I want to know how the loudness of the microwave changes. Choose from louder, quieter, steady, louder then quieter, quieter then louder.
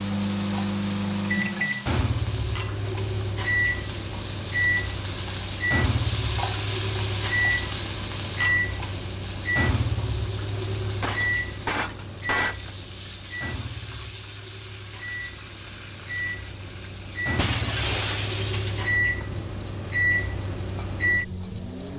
quieter then louder.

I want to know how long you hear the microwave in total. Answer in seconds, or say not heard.
22 s.